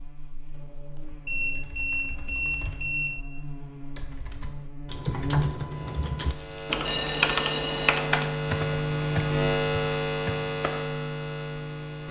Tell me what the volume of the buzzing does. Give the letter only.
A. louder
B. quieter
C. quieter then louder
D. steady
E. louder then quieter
A.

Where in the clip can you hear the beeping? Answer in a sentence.
You can hear the beeping from 1.2 to 3.2 s and from 6.4 to 8.0 s.